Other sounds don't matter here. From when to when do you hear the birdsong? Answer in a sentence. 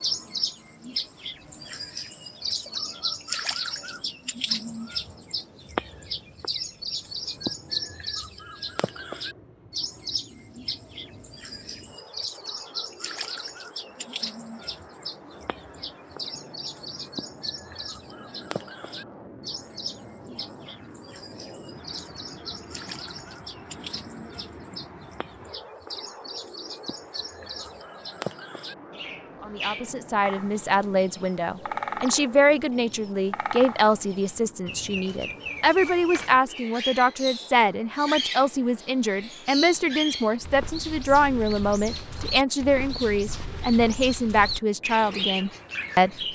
You can hear the birdsong from 0.0 to 46.2 s.